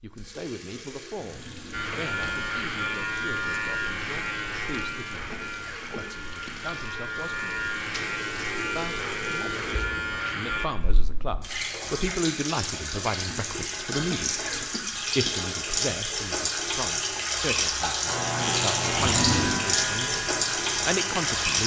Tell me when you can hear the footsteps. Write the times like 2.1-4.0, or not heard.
not heard.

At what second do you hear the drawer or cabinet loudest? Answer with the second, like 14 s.
19 s.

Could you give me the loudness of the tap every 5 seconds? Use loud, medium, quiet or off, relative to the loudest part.
quiet, quiet, medium, loud, loud.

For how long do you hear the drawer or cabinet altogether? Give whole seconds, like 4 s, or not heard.
3 s.